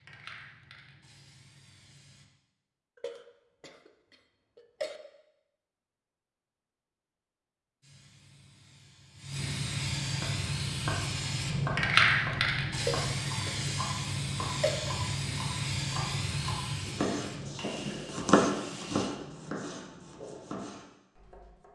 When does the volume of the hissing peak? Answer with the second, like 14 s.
12 s.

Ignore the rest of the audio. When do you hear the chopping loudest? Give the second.
18 s.